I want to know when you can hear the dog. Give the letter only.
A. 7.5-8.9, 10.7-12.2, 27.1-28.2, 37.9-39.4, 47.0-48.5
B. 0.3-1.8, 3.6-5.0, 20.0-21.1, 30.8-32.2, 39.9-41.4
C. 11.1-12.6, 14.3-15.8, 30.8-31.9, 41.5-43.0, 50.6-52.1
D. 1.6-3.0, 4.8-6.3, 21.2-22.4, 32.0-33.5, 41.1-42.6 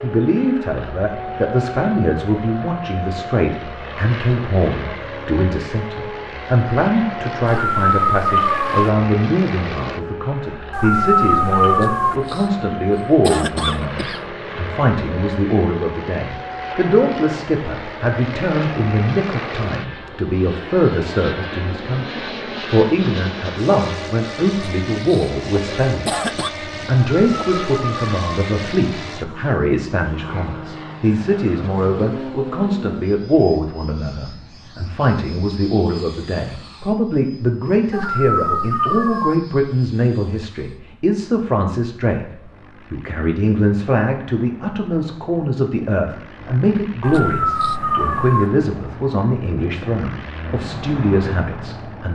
A.